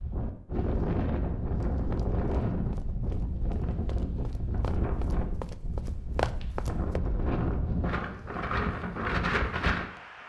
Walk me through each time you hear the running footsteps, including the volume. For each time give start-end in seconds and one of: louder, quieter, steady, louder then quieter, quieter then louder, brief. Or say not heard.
1.6-7.0 louder.